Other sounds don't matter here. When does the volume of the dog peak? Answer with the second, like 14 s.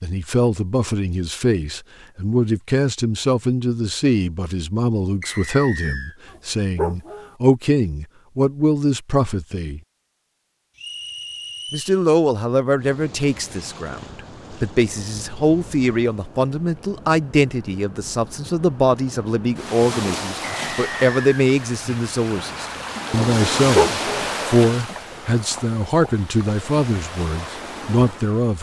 24 s.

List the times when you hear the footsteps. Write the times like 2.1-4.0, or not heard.
not heard.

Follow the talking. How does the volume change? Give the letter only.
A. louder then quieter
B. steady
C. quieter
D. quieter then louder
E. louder
B.